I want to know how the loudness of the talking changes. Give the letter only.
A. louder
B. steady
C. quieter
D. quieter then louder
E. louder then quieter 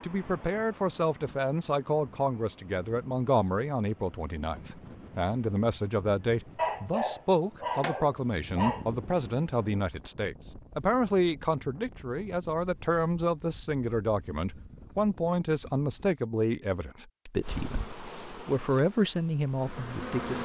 B.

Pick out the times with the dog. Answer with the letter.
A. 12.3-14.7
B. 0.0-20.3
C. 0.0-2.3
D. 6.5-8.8
D.